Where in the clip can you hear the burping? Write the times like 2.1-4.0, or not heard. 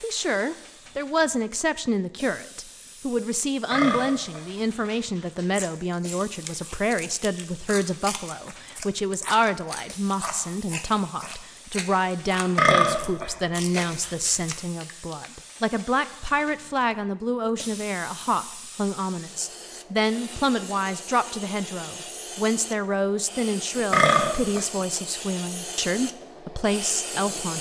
3.7-5.7, 12.6-14.3, 23.9-24.6.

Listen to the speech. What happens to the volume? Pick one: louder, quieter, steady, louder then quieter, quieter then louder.
steady.